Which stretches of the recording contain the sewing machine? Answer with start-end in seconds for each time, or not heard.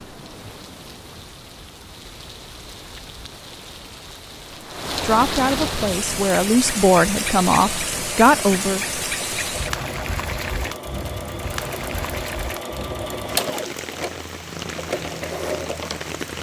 5.8-16.3.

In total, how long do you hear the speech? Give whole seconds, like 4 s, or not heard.
4 s.